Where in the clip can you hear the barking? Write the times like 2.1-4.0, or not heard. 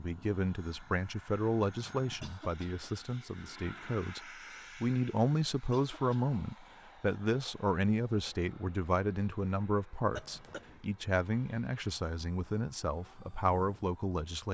not heard.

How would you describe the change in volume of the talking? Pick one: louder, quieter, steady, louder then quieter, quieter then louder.
steady.